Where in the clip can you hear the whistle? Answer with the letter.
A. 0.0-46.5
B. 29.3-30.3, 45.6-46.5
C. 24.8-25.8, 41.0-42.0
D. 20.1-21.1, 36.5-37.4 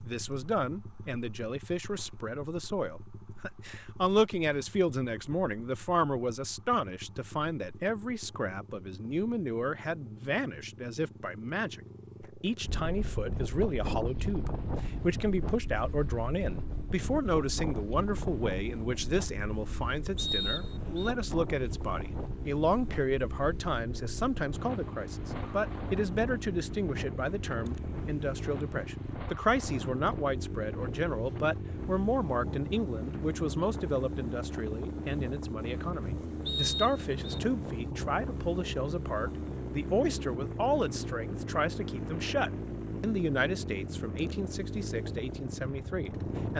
D.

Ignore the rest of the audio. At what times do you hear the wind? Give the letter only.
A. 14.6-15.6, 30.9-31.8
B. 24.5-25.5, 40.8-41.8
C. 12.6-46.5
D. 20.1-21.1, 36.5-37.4
C.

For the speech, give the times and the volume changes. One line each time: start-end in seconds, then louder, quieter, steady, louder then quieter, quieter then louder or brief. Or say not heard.
0.0-46.5 steady.